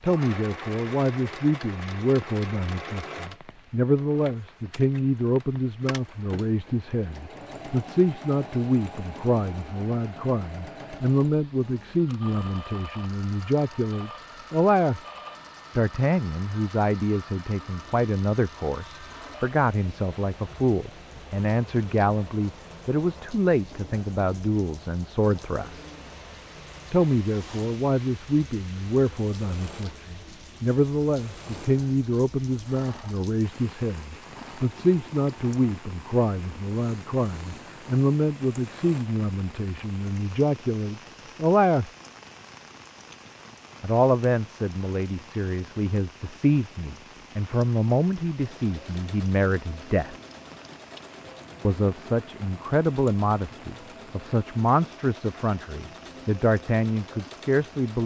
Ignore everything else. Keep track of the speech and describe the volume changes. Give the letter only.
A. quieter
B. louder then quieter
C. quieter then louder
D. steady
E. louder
D.